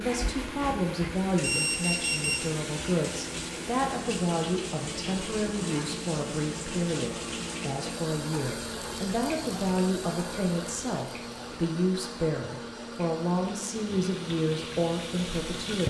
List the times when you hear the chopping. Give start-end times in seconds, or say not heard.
not heard.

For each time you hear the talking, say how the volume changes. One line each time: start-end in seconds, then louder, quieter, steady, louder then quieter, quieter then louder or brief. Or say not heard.
0.0-15.8 steady.